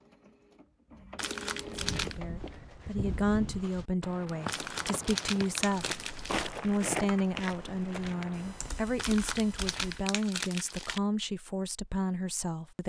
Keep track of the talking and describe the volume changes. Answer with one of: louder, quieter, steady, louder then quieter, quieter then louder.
steady.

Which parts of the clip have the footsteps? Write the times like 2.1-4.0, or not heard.
1.6-8.7.